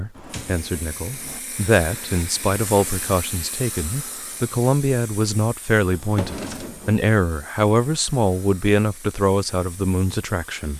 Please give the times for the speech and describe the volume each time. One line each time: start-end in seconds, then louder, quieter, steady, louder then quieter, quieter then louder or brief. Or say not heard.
0.0-10.7 steady.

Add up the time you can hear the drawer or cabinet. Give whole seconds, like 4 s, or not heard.
2 s.